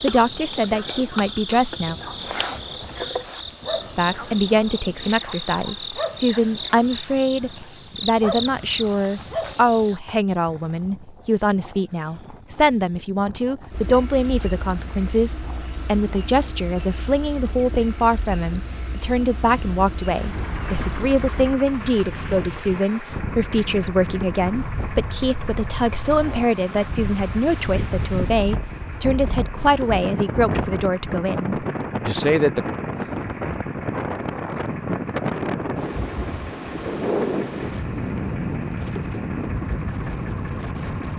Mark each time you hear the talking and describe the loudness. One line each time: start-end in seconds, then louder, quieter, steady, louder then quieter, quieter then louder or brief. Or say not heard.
0.0-1.9 brief
4.0-32.7 steady.